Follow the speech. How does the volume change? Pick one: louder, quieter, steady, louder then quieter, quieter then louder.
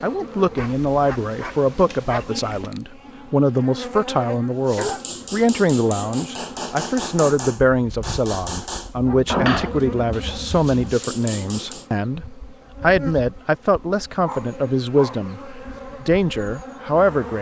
steady.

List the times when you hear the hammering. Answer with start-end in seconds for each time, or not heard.
4.7-11.8.